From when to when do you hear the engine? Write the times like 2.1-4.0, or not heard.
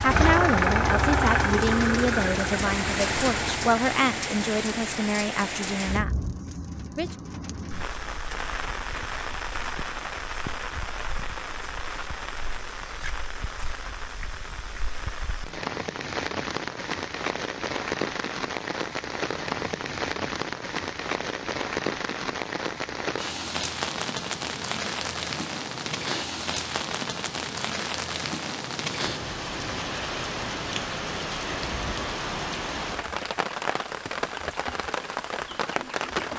0.0-3.8.